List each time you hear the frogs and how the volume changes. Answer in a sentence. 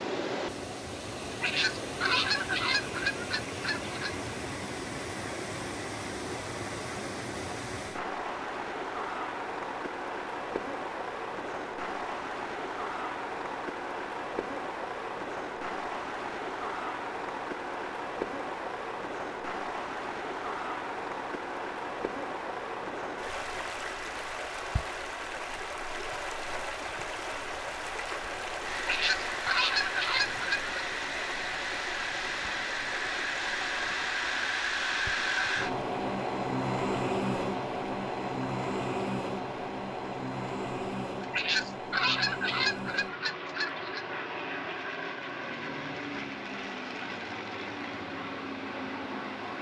You can't hear the frogs here.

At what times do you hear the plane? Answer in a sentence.
You can hear the plane from 28.6 to 49.5 s.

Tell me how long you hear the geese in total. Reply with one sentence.
You can hear the geese for 8 seconds altogether.